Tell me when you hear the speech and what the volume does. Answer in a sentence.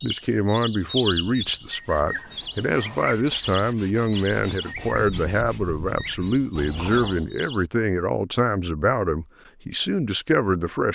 The speech can be heard from 0.0 to 10.9 s, at a steady volume.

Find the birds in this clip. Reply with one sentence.
You can hear the birds from 0.0 to 7.7 s.